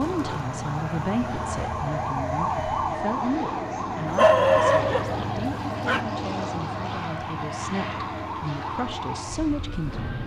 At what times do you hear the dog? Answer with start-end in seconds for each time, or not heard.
4.0-6.0.